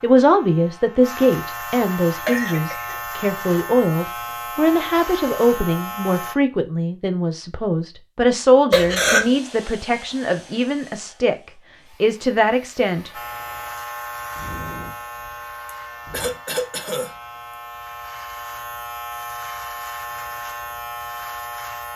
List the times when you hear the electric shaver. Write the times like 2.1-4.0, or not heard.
0.0-6.3, 13.1-21.9.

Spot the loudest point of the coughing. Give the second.
9 s.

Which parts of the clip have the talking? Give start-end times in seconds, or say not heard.
0.0-11.3, 12.0-13.1.